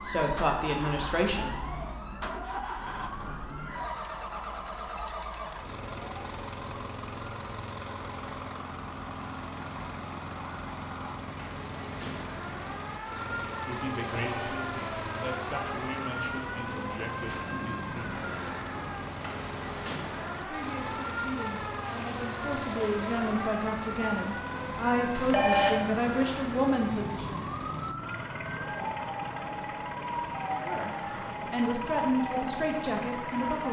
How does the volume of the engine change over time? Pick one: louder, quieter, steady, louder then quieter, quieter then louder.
steady.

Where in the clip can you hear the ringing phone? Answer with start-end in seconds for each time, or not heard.
14.1-14.5, 25.2-25.7.